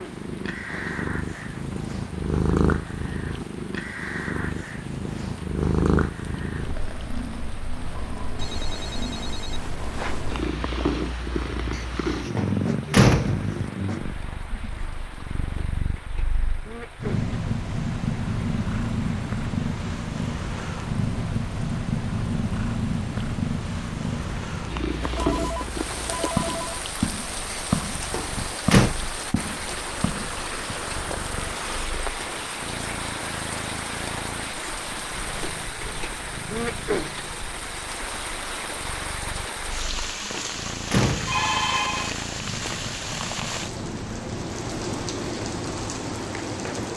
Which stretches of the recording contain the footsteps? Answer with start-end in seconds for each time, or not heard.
24.9-32.5.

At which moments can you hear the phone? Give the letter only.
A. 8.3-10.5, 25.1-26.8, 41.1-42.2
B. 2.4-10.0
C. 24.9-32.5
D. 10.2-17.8
A.